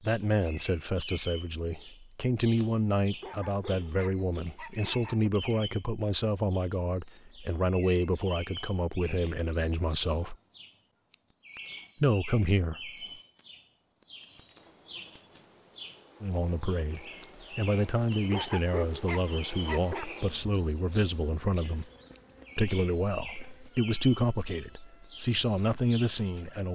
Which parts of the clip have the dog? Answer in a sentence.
You can hear the dog from 3.2 to 5.3 s and from 18.3 to 20.1 s.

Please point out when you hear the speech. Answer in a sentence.
You can hear the speech from 0.0 to 10.3 s, from 12.0 to 13.1 s, from 16.2 to 21.9 s and from 22.6 to 26.6 s.